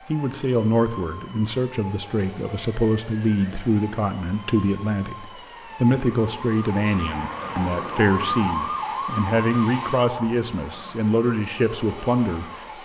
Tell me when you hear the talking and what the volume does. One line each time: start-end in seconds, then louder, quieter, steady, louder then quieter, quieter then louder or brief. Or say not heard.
0.1-12.8 steady.